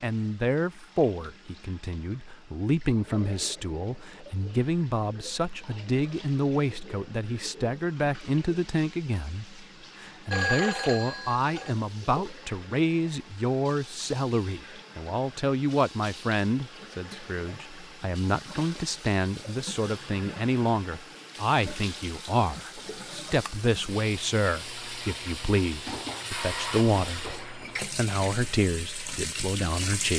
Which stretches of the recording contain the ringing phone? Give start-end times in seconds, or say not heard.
10.3-11.8.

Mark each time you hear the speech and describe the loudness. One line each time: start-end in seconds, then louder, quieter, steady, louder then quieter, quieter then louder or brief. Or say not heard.
0.0-30.1 steady.